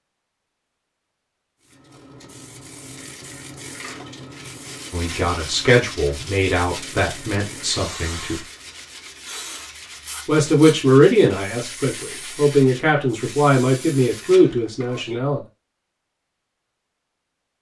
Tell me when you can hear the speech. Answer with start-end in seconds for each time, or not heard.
4.9-8.4, 10.2-15.4.